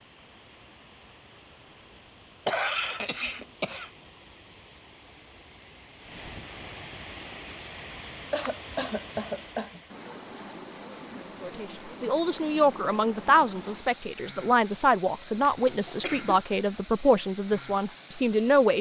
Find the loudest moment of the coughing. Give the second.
3 s.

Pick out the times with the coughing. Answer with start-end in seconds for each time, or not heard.
2.5-3.9, 8.0-9.8, 15.4-16.4.